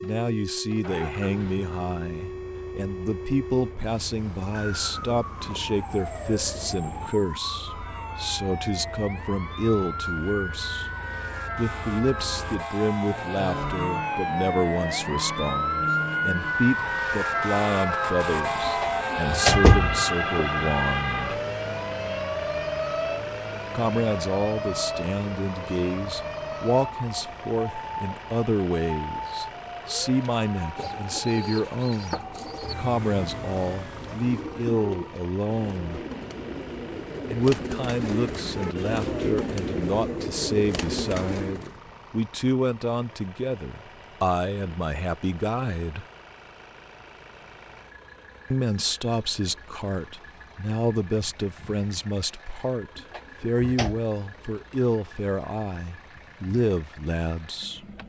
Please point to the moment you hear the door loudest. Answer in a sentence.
The volume of the door peaks at 20 seconds.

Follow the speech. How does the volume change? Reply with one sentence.
The volume of the speech stays about the same.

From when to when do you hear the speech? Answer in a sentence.
The speech can be heard from 0.0 to 10.9 s, from 11.6 to 21.4 s, from 23.7 to 36.0 s, from 37.2 to 46.0 s and from 48.5 to 57.8 s.